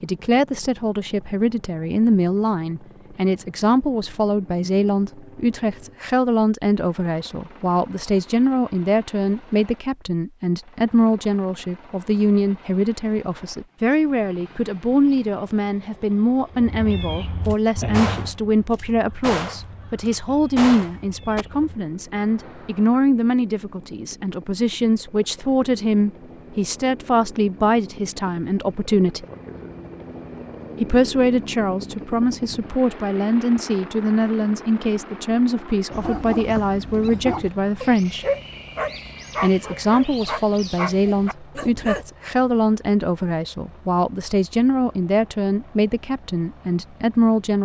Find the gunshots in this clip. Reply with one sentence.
The gunshots can be heard from 17.4 to 21.4 s.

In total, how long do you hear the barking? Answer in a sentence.
The barking can be heard for 6 seconds in total.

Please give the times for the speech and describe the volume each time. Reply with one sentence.
You can hear the speech from 0.0 to 29.2 s, at a steady volume; from 30.8 to 38.2 s, at a steady volume; and from 39.4 to 47.6 s, at a steady volume.